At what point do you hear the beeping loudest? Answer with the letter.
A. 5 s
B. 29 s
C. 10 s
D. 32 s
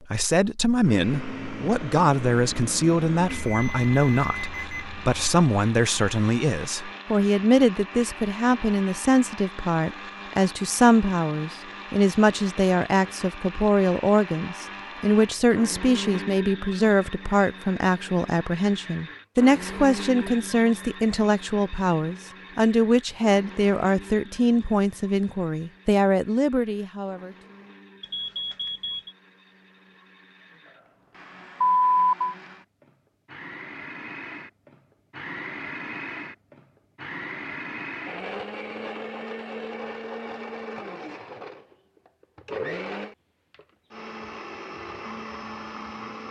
D.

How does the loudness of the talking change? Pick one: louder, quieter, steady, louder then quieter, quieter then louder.
steady.